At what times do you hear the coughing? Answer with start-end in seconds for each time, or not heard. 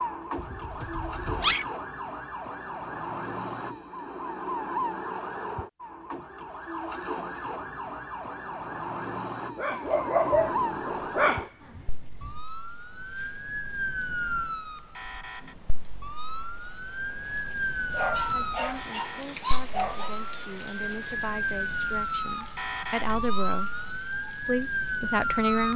not heard.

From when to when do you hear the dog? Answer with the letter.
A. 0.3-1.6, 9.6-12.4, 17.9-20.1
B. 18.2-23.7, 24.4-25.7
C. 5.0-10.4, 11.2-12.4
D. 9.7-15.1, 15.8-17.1
A.